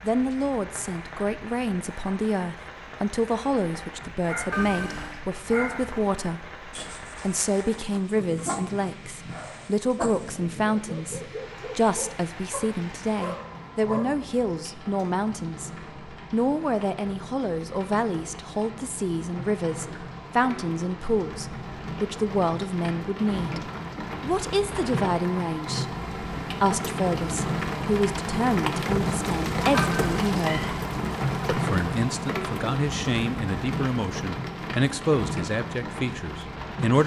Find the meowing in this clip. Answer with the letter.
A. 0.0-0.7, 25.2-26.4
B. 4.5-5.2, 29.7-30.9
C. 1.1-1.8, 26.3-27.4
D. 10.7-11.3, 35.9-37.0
B.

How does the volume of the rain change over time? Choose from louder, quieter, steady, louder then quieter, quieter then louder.
louder.